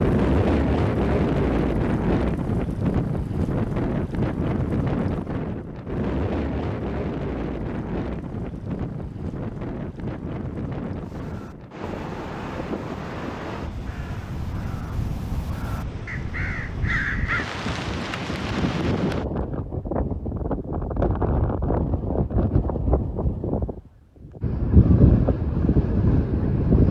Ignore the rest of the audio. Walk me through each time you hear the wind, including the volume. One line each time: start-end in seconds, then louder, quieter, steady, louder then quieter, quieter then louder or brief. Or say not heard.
0.0-26.8 quieter then louder.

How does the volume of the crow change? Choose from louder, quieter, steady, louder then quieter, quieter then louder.
louder.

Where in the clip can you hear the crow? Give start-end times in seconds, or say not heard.
11.0-17.4.